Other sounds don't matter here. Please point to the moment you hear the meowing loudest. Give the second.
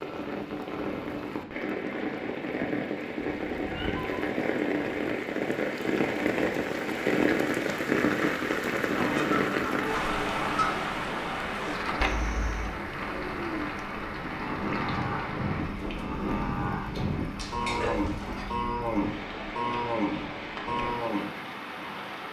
18 s.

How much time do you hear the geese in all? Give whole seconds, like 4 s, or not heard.
2 s.